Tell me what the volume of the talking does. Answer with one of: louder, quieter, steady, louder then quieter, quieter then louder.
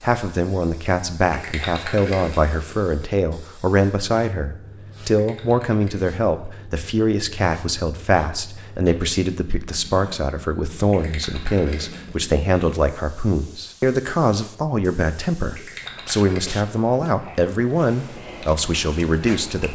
steady.